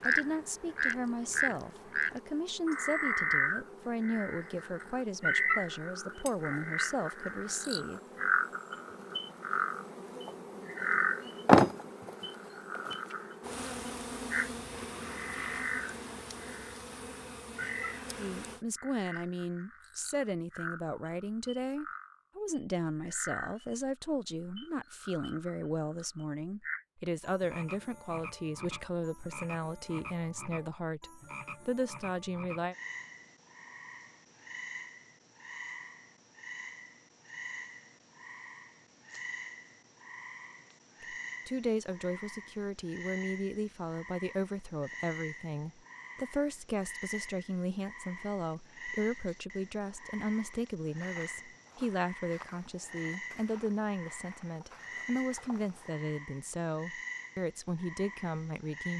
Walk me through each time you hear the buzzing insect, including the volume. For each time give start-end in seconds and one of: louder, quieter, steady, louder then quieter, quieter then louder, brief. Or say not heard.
0.0-18.6 louder then quieter.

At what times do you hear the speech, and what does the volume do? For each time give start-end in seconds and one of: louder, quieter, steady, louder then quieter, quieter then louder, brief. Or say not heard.
0.0-8.0 steady
18.1-32.8 steady
41.0-58.9 steady.